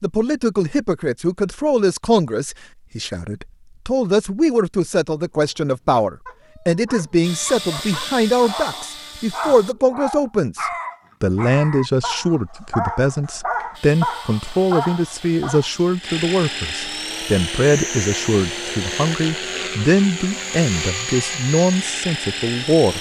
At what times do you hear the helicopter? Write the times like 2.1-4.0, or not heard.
7.2-9.8, 13.7-22.9.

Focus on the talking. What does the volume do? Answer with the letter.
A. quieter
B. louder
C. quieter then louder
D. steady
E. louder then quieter
D.